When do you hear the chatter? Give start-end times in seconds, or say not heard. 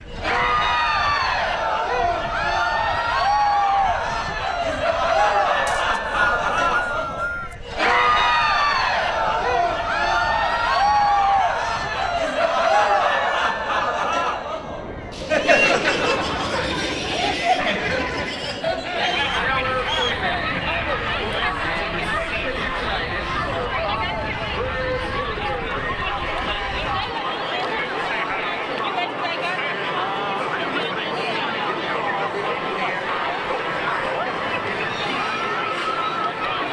0.1-36.6.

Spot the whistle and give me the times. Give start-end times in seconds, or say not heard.
5.7-7.5, 18.9-20.2.